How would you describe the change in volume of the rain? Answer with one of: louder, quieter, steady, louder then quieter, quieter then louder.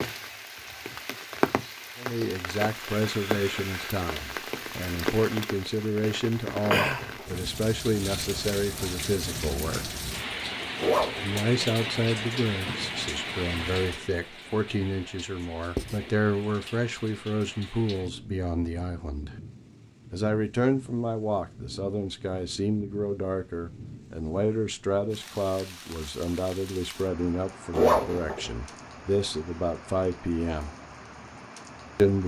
quieter.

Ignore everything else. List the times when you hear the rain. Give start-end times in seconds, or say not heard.
0.0-32.2.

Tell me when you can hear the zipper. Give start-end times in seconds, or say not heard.
6.6-7.3, 10.8-11.6, 27.7-28.5.